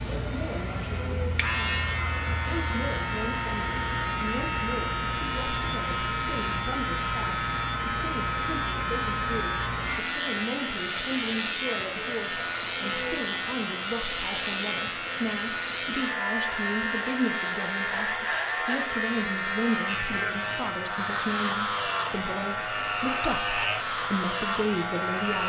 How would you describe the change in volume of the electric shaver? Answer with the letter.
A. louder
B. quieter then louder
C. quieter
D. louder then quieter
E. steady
E.